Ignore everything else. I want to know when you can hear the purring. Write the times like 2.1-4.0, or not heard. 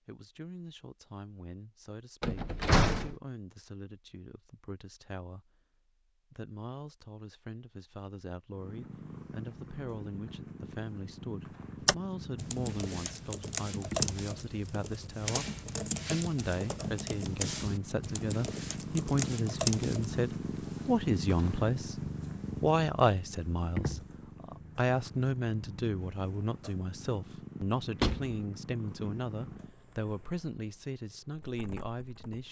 8.5-32.4.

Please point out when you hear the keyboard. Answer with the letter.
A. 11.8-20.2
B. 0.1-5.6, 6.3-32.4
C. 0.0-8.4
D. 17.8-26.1
A.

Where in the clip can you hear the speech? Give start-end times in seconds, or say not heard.
0.1-5.6, 6.3-32.4.